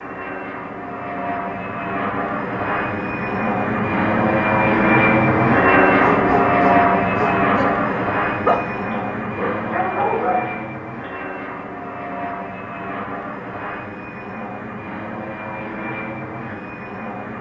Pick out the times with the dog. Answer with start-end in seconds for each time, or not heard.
6.0-10.6.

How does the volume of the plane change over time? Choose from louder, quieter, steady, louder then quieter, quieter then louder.
louder then quieter.